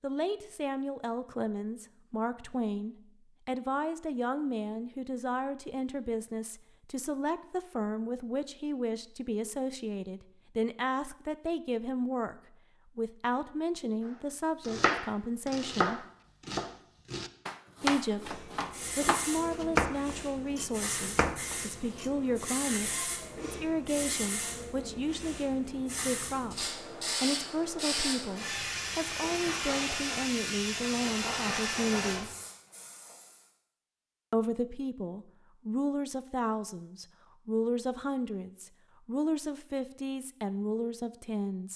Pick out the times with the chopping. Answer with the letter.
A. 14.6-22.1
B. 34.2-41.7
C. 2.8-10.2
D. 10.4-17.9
A.